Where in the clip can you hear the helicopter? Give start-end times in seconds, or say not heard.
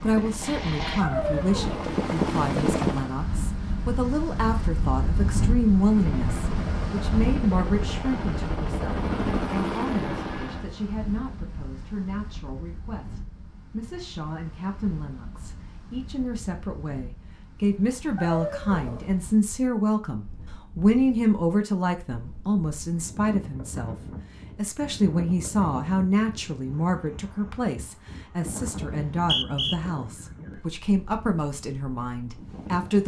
0.0-3.1, 5.8-10.7.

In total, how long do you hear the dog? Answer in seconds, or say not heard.
2 s.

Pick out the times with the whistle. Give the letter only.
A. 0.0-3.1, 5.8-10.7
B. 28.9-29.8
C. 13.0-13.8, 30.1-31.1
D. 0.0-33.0
B.